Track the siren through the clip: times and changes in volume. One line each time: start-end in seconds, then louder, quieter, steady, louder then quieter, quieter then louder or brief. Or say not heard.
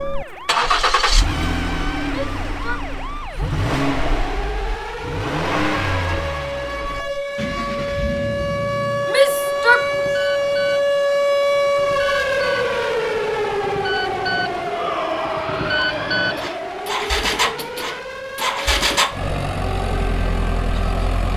0.0-21.3 louder then quieter.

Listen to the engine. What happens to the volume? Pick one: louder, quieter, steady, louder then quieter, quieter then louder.
quieter then louder.